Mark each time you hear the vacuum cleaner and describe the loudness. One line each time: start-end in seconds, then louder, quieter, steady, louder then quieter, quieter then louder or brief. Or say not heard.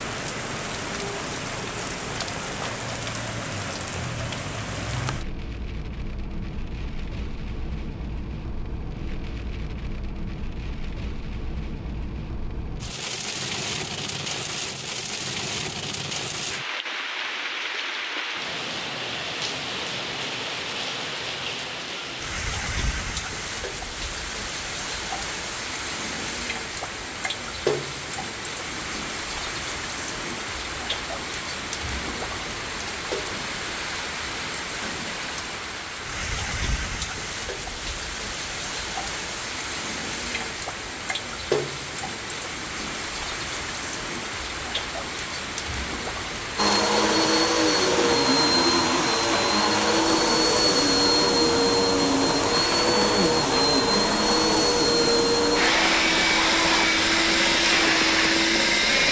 46.5-59.0 steady.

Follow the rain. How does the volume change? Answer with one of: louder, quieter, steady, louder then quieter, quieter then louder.
steady.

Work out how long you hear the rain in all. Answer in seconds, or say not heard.
59 s.